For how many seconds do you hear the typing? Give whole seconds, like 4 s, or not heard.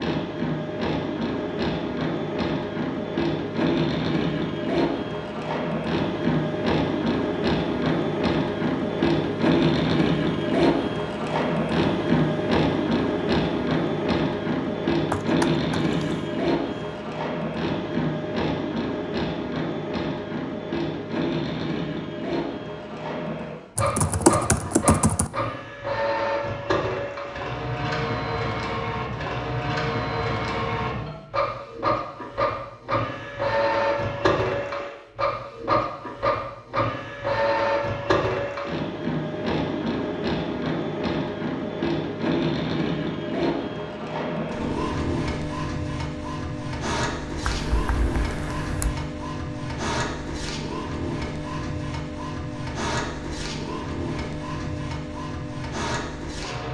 4 s.